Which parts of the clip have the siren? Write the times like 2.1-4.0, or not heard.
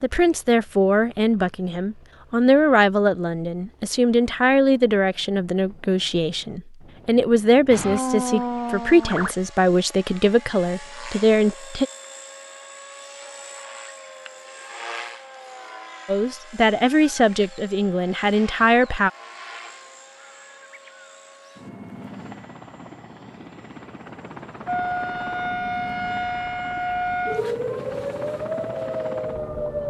7.7-9.3, 24.6-29.8.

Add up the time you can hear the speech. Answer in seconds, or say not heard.
15 s.